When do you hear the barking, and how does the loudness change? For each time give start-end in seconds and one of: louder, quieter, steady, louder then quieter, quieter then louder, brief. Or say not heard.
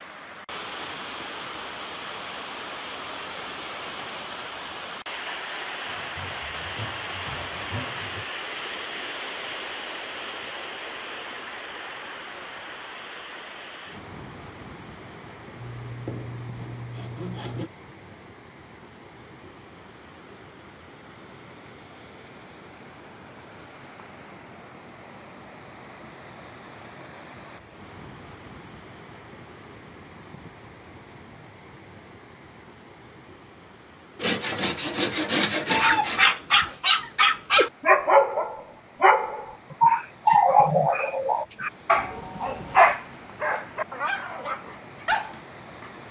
35.7-46.0 quieter.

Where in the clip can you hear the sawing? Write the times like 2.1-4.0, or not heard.
5.8-8.2, 15.6-17.7, 34.2-36.4.